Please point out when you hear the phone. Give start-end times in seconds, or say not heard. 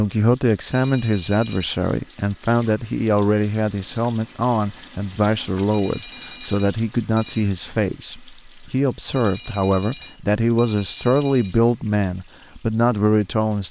0.7-1.8, 5.7-7.5, 9.1-11.6.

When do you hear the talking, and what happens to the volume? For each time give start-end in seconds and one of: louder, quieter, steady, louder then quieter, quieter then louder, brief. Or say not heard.
0.0-13.6 steady.